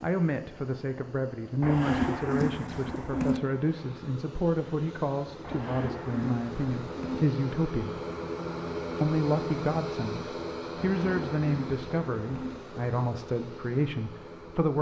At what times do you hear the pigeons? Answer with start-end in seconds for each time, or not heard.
1.6-3.4, 5.4-7.2, 10.8-12.6.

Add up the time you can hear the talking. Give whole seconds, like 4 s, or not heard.
14 s.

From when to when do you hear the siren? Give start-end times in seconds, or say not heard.
not heard.